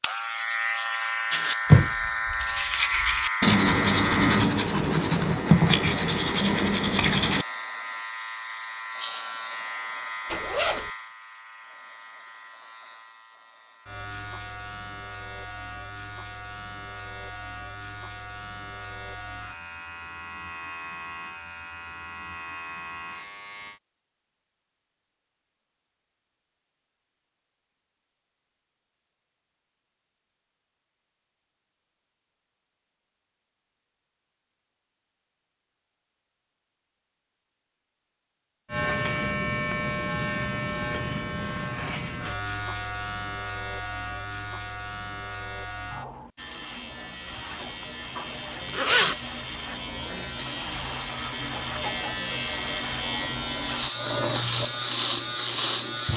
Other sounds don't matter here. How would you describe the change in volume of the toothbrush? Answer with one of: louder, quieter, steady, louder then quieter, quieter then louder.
quieter.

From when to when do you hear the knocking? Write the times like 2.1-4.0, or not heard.
not heard.